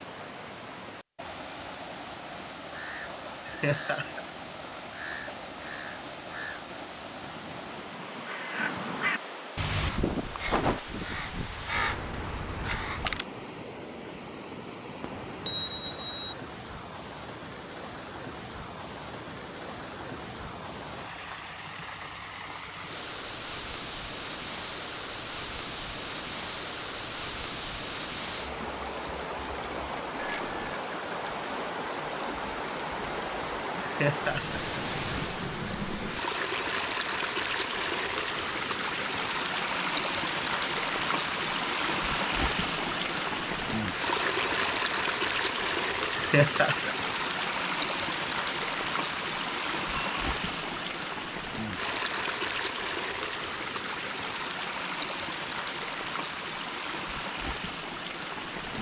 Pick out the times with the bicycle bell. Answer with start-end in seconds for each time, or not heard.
15.0-16.4, 30.1-30.8, 49.9-50.4.